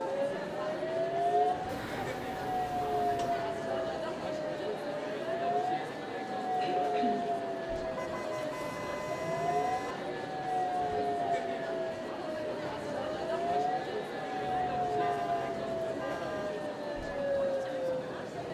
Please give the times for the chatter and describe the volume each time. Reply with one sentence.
The chatter can be heard from 0.0 to 18.4 s, at a steady volume.